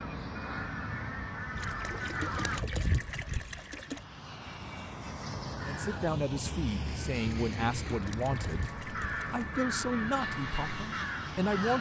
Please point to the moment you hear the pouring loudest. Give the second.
3 s.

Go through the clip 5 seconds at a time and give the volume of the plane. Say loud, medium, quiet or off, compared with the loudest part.
medium, loud, loud.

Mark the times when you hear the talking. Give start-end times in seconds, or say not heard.
5.7-11.7.